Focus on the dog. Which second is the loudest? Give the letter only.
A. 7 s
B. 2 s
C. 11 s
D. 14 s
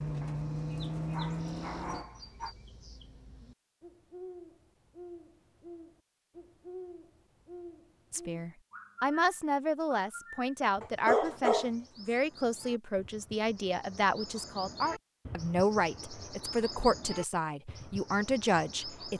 C.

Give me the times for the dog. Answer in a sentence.
You can hear the dog from 0.2 to 2.5 s and from 10.8 to 12.2 s.